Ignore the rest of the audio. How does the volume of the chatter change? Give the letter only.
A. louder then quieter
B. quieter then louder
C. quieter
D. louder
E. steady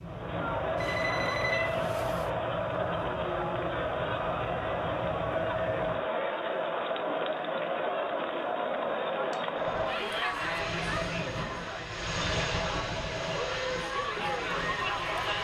E.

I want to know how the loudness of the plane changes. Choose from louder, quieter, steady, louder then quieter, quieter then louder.
louder.